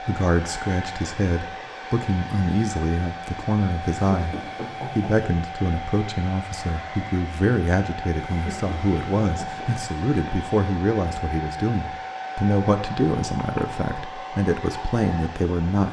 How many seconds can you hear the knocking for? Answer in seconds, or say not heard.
3 s.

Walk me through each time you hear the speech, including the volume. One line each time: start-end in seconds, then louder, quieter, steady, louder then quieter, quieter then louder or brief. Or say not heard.
0.1-15.8 steady.